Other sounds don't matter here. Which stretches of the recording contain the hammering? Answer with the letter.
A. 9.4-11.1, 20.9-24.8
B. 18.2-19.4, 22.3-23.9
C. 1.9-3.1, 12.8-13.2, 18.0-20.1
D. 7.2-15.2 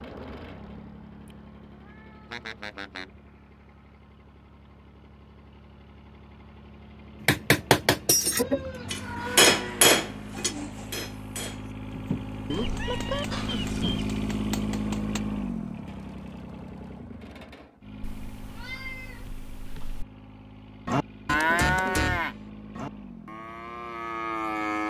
D.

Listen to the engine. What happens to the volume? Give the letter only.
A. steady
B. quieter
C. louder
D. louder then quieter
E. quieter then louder
D.